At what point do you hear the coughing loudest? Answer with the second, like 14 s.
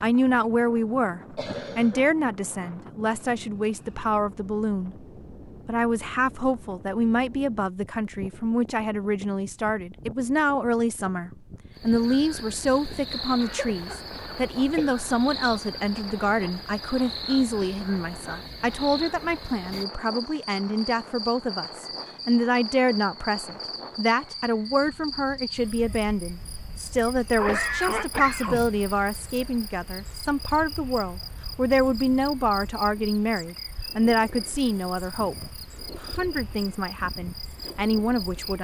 28 s.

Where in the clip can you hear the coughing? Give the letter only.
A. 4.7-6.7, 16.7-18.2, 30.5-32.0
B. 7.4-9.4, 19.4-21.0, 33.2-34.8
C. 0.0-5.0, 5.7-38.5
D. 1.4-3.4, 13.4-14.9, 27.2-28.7
D.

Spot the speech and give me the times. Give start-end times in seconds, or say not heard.
0.0-5.0, 5.7-38.5.